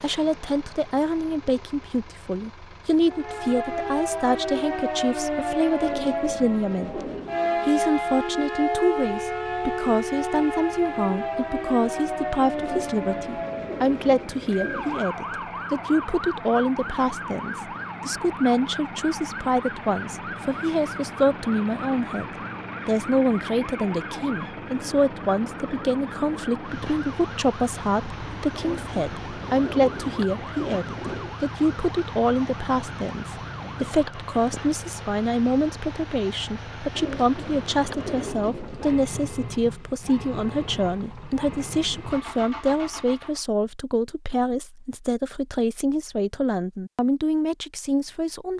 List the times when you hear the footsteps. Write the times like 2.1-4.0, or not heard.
not heard.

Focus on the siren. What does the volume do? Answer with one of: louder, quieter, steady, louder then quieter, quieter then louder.
quieter.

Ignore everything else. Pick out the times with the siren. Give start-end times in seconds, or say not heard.
3.0-34.4.